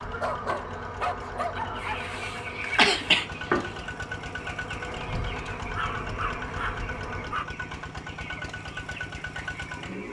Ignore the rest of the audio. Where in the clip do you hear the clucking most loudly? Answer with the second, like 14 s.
3 s.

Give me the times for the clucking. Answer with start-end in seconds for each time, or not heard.
1.8-10.0.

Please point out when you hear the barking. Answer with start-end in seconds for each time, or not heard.
0.2-2.1, 5.6-7.5.